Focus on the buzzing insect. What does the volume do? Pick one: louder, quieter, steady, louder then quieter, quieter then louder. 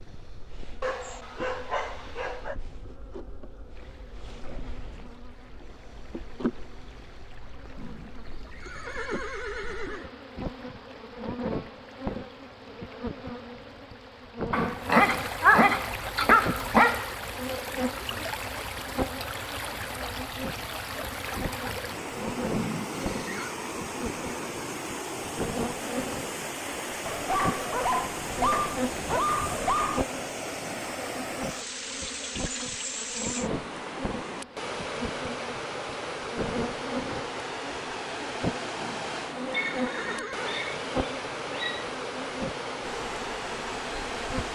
louder.